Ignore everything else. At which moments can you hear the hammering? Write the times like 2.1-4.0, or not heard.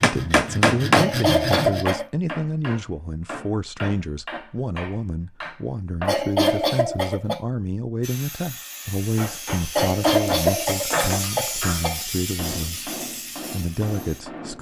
0.0-6.3, 9.2-14.5.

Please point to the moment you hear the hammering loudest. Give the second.
1 s.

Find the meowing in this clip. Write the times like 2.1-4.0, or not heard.
not heard.